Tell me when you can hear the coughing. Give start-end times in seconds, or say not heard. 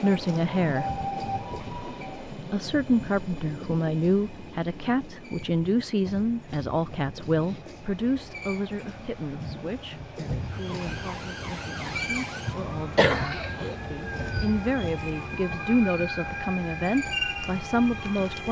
12.9-13.8.